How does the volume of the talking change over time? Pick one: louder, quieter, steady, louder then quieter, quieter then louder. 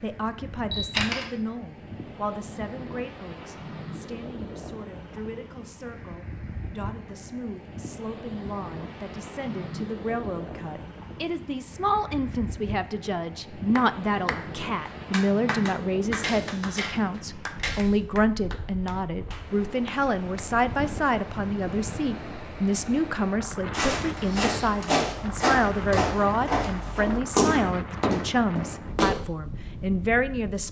louder.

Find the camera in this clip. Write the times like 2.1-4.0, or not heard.
0.7-1.2, 16.2-18.0.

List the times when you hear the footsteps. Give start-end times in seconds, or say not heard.
23.7-29.1.